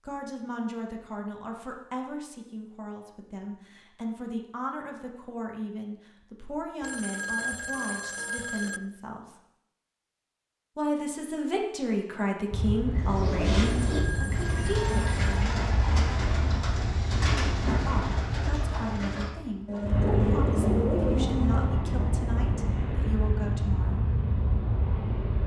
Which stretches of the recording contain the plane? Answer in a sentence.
You can hear the plane from 12.5 to 25.4 s.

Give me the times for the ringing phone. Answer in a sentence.
You can hear the ringing phone from 6.8 to 8.8 s and from 13.6 to 15.2 s.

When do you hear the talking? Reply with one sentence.
The talking can be heard from 0.0 to 9.3 s, from 10.8 to 15.6 s and from 17.9 to 24.1 s.